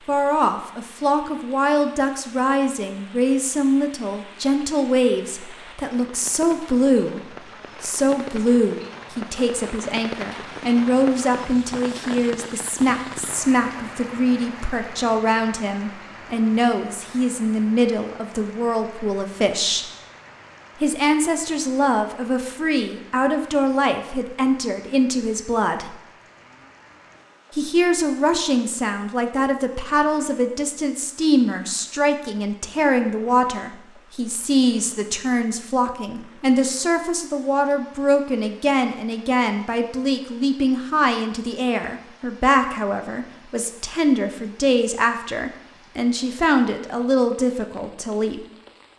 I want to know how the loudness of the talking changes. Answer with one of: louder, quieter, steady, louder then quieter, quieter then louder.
steady.